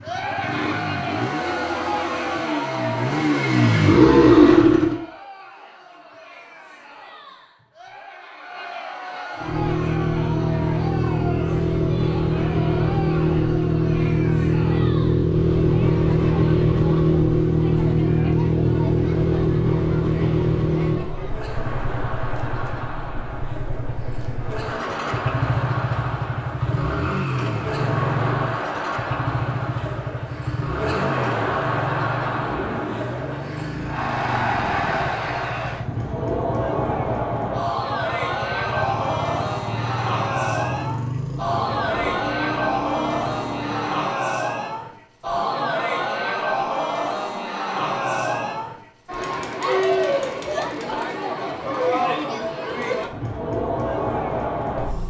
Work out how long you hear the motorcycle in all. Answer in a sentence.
The motorcycle can be heard for 40 seconds in total.